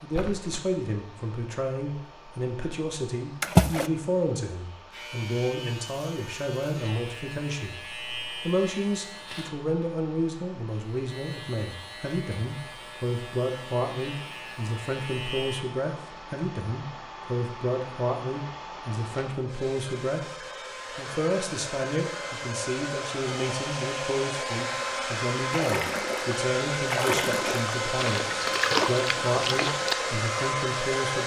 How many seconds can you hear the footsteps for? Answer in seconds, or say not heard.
not heard.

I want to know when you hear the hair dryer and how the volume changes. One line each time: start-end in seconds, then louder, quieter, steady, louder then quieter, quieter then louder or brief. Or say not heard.
0.0-31.2 louder.